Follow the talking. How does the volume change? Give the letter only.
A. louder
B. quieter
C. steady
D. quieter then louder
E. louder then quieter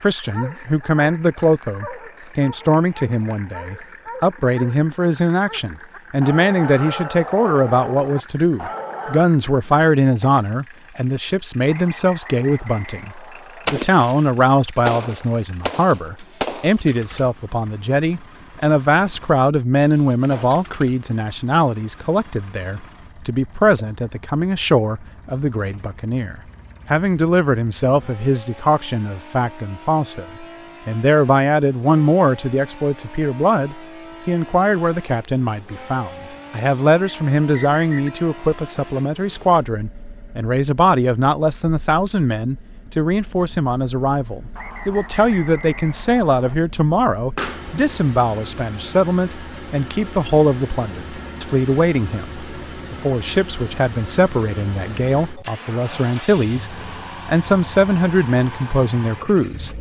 C.